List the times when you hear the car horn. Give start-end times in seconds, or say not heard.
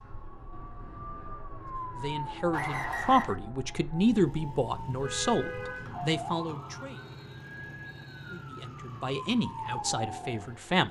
4.7-6.2.